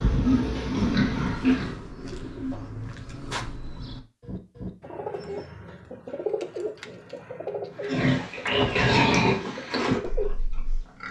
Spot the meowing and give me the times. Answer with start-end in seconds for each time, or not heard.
not heard.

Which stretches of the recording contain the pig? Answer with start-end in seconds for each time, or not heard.
0.0-1.8, 7.8-11.0.